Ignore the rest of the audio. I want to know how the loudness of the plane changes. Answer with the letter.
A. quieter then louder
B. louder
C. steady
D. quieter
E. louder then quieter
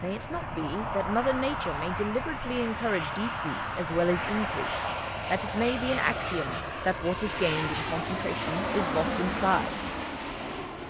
C.